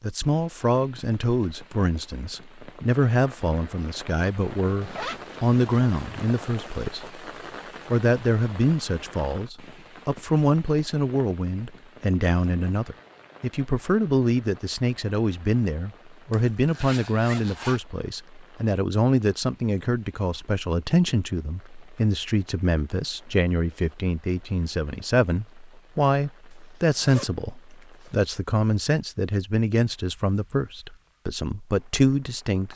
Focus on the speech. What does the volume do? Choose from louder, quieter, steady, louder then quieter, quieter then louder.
steady.